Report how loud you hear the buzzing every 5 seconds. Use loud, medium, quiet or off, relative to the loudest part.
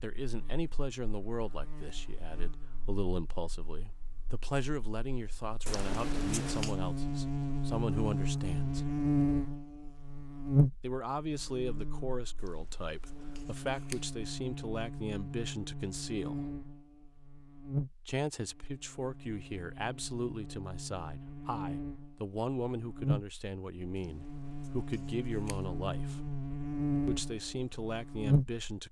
quiet, loud, loud, medium, medium, loud.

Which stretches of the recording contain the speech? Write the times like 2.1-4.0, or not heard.
0.0-8.9, 10.8-16.6, 18.1-26.3, 27.1-28.8.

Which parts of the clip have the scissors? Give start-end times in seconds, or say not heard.
5.7-6.8, 12.4-14.1, 23.9-25.6.